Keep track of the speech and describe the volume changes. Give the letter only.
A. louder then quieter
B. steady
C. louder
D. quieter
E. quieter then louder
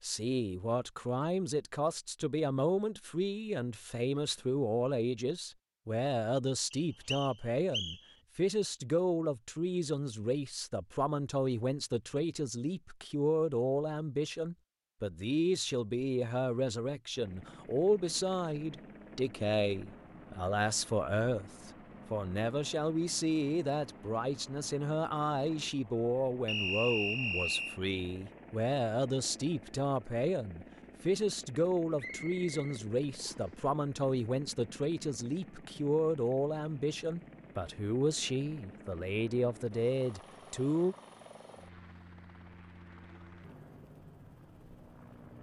B.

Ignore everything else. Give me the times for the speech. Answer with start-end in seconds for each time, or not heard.
0.0-41.0.